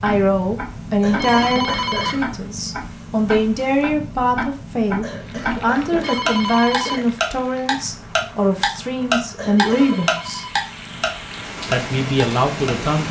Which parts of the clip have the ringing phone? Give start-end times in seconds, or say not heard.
1.1-2.1, 6.0-7.0, 9.5-10.5.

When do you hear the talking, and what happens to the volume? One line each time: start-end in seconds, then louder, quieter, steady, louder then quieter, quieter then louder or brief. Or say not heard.
0.0-10.4 steady
11.7-13.0 brief.